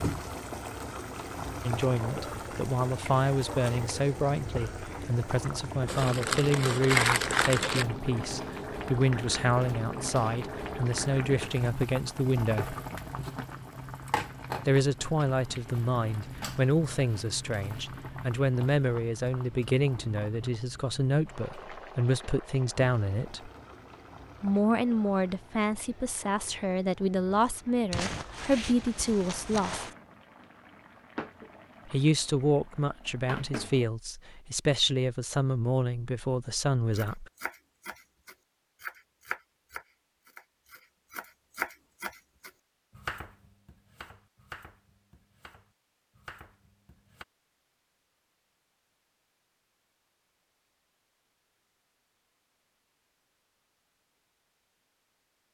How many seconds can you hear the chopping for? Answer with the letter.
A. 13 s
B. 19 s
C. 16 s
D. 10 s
D.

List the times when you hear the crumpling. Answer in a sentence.
You can hear the crumpling from 5.8 to 7.8 s and from 27.9 to 29.9 s.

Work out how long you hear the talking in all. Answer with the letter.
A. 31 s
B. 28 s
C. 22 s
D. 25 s
A.